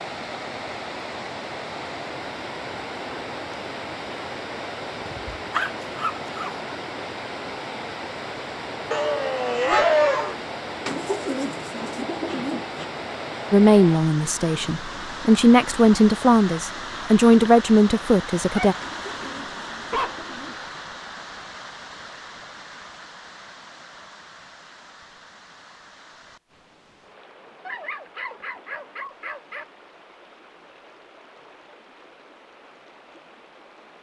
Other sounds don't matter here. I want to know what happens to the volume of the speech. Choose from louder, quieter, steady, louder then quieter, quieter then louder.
louder.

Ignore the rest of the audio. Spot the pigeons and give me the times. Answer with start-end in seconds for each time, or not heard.
10.8-12.8, 18.8-20.8.